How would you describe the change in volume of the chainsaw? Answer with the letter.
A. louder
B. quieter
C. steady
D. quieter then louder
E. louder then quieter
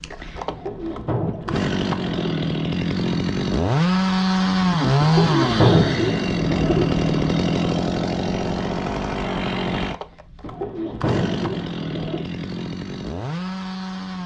E.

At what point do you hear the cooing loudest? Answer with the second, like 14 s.
6 s.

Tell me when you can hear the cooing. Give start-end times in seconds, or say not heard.
0.5-2.4, 5.0-6.8, 10.4-12.2.